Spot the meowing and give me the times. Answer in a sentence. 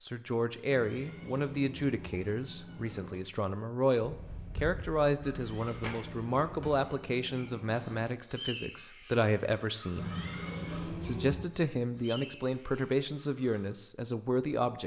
The meowing can be heard from 0.7 to 3.2 s, from 5.3 to 8.0 s and from 9.9 to 11.4 s.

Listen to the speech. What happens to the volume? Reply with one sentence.
The volume of the speech stays about the same.